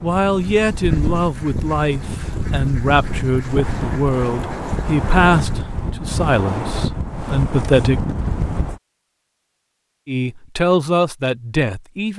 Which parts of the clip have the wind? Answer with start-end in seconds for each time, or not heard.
0.0-8.8.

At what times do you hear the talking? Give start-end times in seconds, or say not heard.
0.0-8.0, 10.1-12.1.